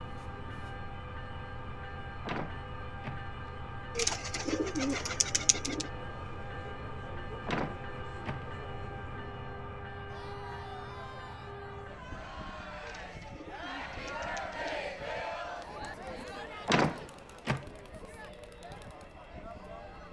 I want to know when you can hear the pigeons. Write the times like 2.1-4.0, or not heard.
4.0-5.9, 12.8-14.8.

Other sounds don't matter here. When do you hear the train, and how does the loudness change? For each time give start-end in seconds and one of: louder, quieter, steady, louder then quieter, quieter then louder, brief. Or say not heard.
0.0-20.0 quieter.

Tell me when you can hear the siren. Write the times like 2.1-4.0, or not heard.
not heard.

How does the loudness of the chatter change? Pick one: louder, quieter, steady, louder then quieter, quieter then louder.
louder then quieter.